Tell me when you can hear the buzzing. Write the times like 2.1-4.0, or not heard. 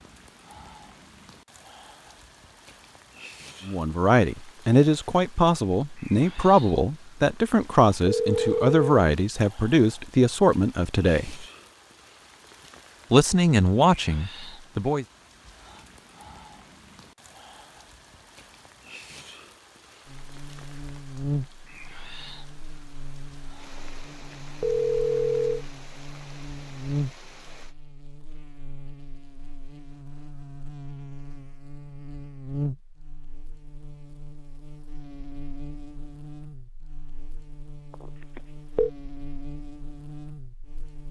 20.1-41.0.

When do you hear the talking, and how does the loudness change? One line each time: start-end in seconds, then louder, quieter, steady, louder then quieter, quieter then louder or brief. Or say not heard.
3.6-11.4 steady
13.1-15.1 brief.